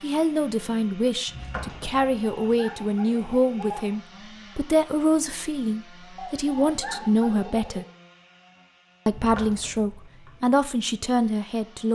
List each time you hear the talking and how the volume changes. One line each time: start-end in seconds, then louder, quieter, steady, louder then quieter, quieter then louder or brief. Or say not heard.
0.0-7.8 steady
9.1-11.8 brief.